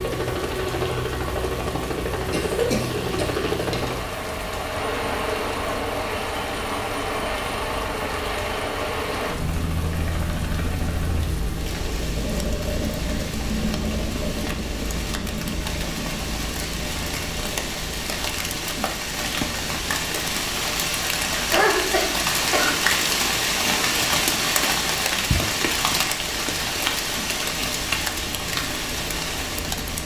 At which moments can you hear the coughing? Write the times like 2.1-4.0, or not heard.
2.3-4.0, 21.4-22.8.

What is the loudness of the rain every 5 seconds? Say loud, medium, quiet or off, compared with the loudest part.
quiet, quiet, quiet, medium, loud, loud.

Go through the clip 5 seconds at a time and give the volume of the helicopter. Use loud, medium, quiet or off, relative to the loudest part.
loud, loud, loud, medium, quiet, medium.